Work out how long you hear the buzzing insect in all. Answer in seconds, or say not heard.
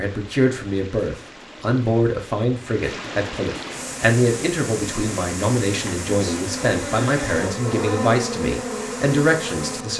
6 s.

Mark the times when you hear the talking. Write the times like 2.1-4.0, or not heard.
0.0-9.9.